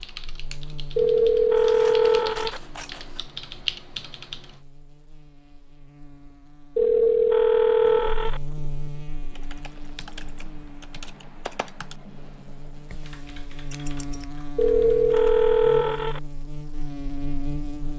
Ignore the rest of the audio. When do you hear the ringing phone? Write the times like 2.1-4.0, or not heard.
0.9-2.6, 6.8-8.4, 14.6-16.2.